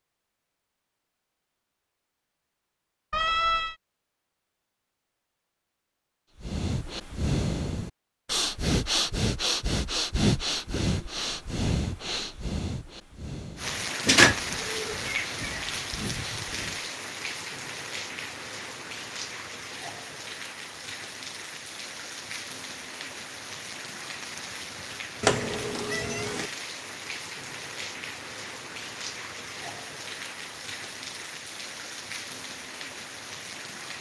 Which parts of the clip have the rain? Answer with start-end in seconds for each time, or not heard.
13.6-33.9.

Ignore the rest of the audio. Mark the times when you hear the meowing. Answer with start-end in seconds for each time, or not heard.
3.1-3.8, 14.1-15.6, 25.2-26.4.